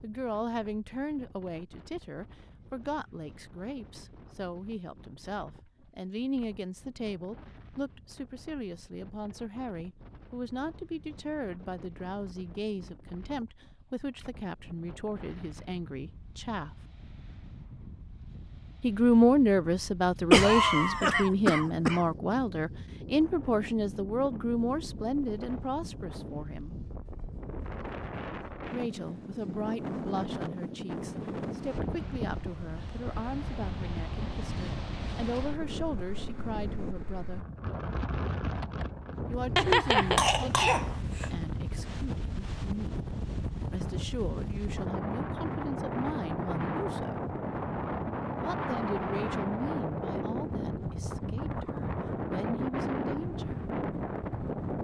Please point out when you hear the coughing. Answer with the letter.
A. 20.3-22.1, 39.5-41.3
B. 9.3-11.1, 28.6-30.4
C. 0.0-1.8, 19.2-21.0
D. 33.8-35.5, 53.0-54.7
A.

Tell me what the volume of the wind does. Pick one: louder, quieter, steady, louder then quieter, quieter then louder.
louder.